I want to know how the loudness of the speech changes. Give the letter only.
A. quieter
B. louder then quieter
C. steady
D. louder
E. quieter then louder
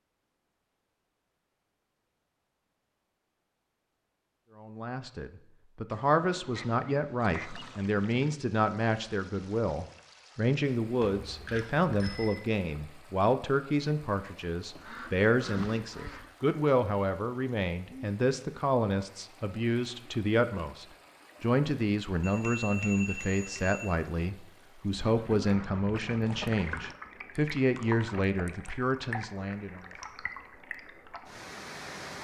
C.